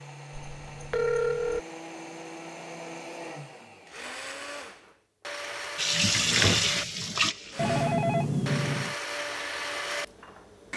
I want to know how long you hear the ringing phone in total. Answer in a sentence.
The ringing phone can be heard for 3 seconds in total.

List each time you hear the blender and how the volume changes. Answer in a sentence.
The blender can be heard from 0.0 to 10.7 s, getting louder.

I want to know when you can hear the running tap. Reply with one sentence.
You can hear the running tap from 5.8 to 7.9 s.